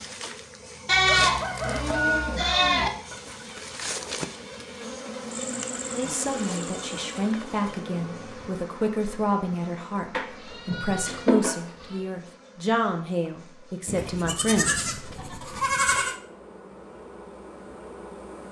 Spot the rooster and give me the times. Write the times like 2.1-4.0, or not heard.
1.2-2.9.